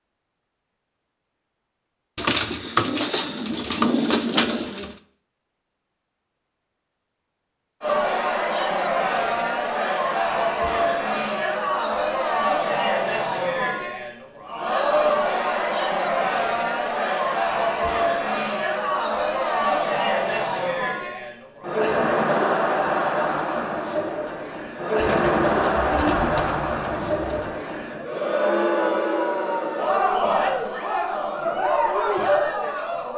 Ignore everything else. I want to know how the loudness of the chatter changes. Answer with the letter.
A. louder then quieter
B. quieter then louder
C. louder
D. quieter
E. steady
E.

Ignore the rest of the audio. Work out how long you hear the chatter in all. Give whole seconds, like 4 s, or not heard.
25 s.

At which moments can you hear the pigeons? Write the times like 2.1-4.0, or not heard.
2.1-5.0, 24.9-27.5.